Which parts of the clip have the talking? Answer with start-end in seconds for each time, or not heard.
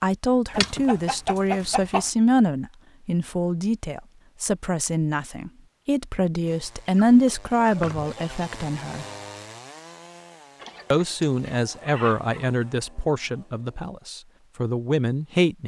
0.0-9.1, 10.9-15.6.